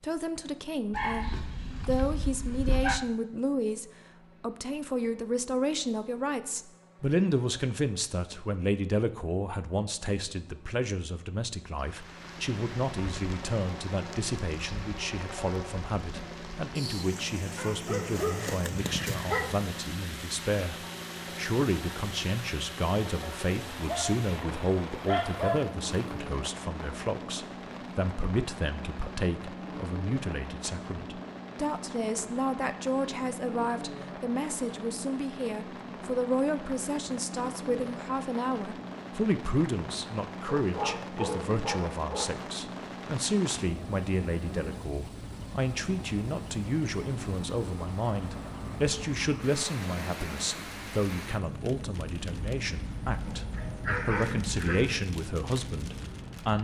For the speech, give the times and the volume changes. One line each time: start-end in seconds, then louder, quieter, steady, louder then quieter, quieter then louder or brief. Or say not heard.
0.0-56.5 steady.